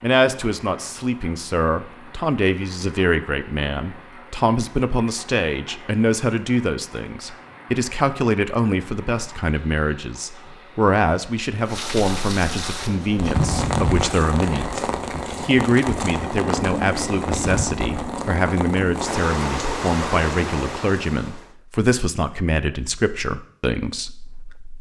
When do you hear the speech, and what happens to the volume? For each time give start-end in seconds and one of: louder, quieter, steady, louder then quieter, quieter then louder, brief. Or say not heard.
0.0-24.7 steady.